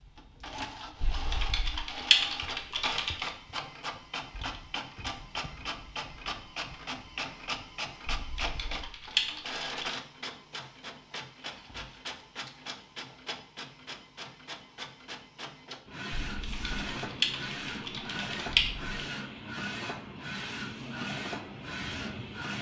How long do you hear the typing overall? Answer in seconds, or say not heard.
7 s.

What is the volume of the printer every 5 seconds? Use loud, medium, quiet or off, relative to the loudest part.
loud, loud, medium, loud, loud.